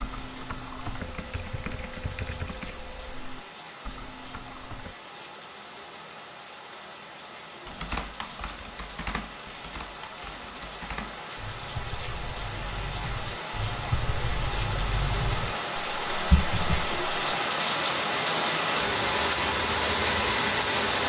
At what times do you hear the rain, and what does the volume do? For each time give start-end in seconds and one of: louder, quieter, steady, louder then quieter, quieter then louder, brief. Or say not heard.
0.0-21.0 louder.